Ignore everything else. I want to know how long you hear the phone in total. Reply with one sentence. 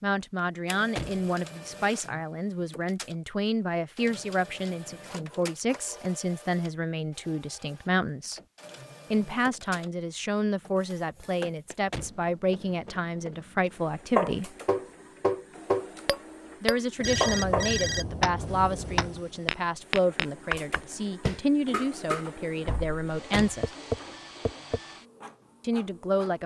The phone can be heard for 3 seconds in total.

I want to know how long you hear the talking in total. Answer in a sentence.
The talking can be heard for 22 seconds in total.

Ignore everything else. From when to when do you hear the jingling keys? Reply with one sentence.
You can't hear the jingling keys here.